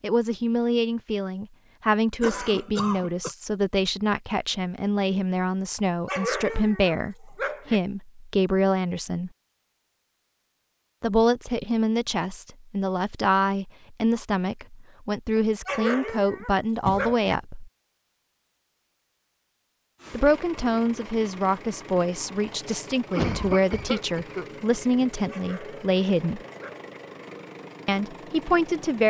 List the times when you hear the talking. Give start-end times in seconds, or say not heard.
0.0-9.3, 11.0-17.7, 20.1-26.4, 27.9-29.0.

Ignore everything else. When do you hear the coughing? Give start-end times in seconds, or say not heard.
2.2-3.4, 16.9-17.3, 23.1-24.4.